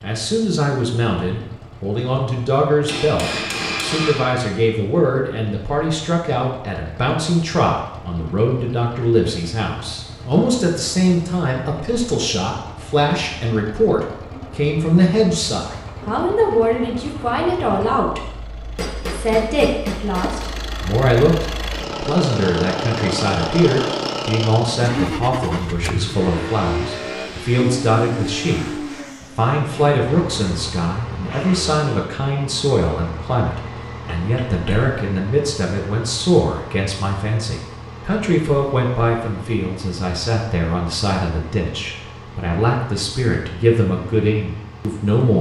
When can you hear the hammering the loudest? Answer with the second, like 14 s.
4 s.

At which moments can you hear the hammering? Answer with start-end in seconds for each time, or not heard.
2.9-4.4, 18.8-20.4, 33.6-34.9.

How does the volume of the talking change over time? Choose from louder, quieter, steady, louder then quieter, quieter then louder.
steady.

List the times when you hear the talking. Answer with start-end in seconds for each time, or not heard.
0.0-45.3.